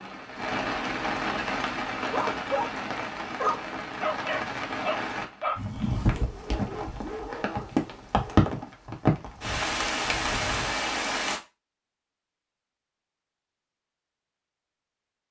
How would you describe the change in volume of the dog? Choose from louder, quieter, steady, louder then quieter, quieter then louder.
quieter.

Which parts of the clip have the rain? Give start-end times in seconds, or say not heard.
0.0-11.4.